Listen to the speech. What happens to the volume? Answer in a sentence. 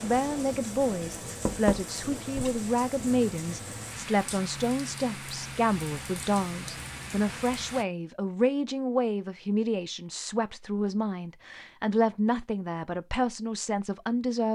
The volume of the speech stays about the same.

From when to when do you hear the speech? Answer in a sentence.
You can hear the speech from 0.0 to 14.5 s.